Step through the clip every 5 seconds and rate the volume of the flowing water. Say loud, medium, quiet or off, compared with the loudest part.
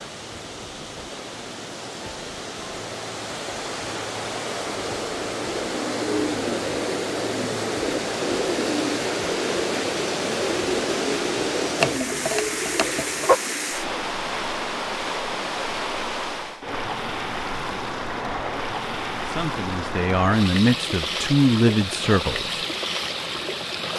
medium, loud, loud, loud, loud.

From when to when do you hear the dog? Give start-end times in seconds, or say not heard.
11.8-13.4.